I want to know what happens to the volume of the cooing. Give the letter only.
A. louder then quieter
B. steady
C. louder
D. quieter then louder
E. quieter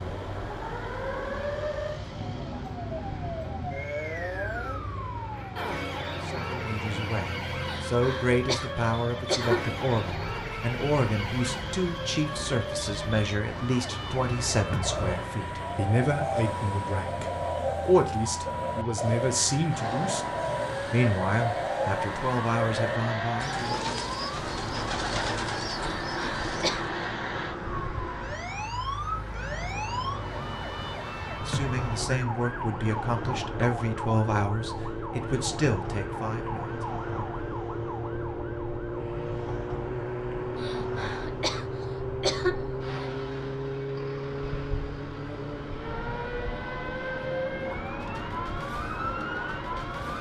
B.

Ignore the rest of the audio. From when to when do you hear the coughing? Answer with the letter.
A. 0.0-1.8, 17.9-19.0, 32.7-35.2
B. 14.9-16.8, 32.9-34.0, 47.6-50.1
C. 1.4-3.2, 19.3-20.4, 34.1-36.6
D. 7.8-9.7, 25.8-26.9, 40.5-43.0
D.